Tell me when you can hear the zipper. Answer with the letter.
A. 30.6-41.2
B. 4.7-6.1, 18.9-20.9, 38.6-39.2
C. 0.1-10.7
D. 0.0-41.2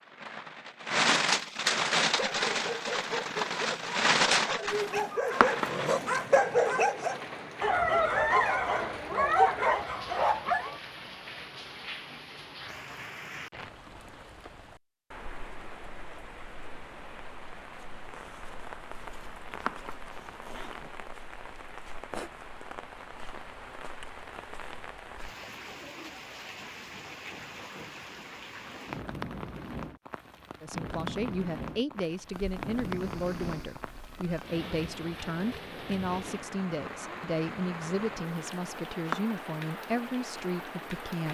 B.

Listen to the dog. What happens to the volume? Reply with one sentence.
The volume of the dog goes up.